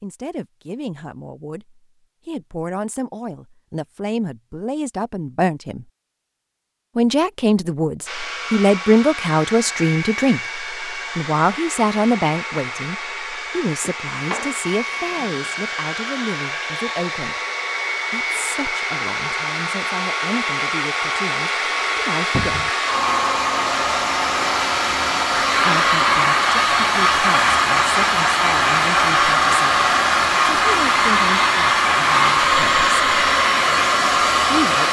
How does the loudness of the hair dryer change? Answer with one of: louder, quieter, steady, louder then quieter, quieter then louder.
louder.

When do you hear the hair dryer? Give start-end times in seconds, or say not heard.
8.1-34.8.